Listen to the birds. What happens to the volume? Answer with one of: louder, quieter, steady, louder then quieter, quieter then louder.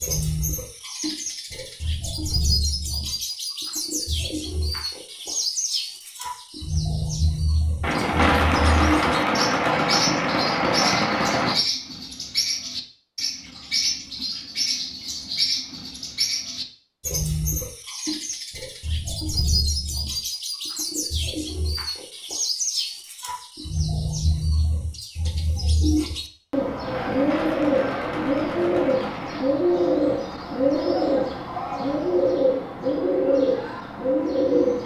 louder.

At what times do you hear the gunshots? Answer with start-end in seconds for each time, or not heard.
7.8-11.6, 26.9-29.5.